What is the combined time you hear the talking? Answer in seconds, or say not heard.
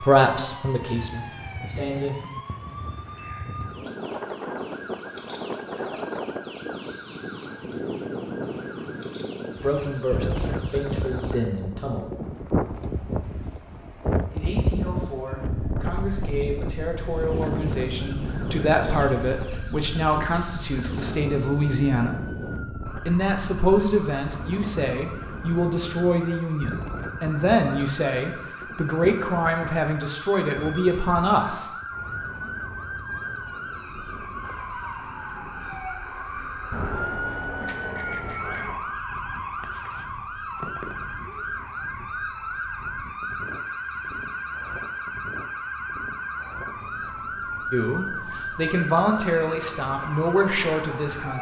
25 s.